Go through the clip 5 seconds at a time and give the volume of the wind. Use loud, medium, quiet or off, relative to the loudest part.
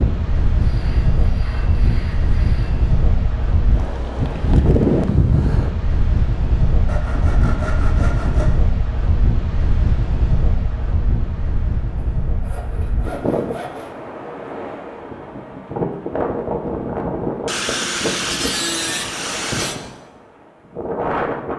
loud, loud, medium, loud, loud.